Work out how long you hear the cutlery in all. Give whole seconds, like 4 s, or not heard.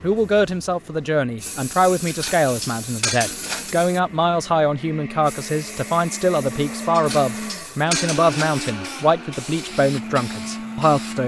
3 s.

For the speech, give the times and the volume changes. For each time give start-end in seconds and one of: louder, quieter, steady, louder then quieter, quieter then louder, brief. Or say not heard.
0.0-11.2 steady.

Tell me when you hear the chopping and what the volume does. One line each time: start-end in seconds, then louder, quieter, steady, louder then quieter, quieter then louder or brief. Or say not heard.
not heard.